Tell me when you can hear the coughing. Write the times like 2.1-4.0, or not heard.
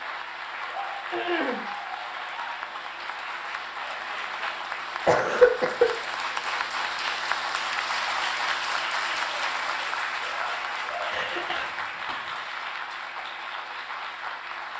1.1-1.6, 5.0-5.9, 11.1-12.2.